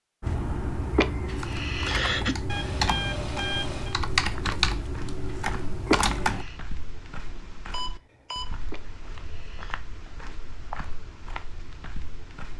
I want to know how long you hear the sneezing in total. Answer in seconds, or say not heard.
3 s.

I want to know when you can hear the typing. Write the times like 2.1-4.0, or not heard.
0.2-6.5.